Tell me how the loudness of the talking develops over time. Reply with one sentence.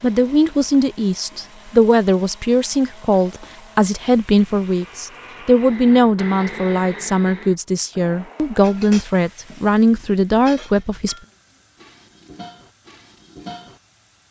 The loudness of the talking stays about the same.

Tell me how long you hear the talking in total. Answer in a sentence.
You can hear the talking for 11 seconds altogether.